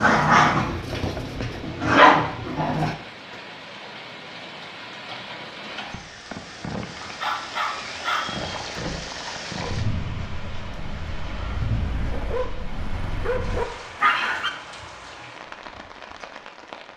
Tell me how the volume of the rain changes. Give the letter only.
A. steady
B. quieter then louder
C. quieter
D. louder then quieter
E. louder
D.